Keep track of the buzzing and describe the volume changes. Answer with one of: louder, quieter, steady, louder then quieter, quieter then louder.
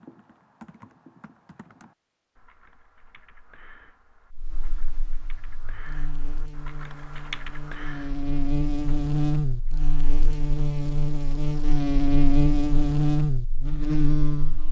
louder.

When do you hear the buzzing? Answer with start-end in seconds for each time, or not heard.
4.3-14.6.